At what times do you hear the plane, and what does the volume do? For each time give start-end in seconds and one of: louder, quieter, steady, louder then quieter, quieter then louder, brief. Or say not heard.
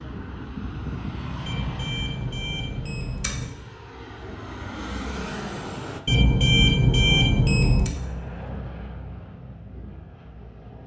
0.0-6.0 quieter then louder
7.9-10.8 brief.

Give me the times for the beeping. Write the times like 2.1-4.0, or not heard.
1.4-3.5, 6.0-7.9.